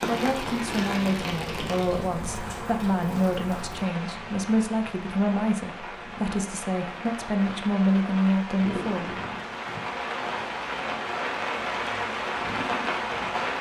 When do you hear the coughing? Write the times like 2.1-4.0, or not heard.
not heard.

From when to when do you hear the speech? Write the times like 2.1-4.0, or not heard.
0.0-9.2.